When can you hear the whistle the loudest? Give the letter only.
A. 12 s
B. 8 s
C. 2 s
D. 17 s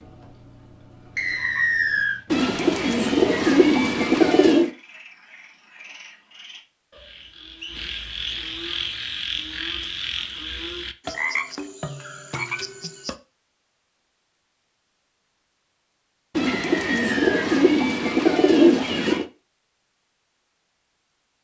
C.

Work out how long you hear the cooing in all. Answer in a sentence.
You can hear the cooing for 5 seconds altogether.